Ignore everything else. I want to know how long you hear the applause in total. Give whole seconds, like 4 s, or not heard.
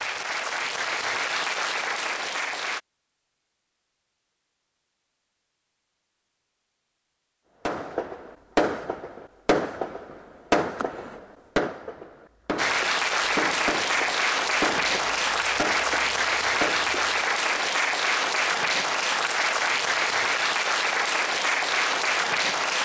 13 s.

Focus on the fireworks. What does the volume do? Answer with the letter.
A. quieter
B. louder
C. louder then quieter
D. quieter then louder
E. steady
A.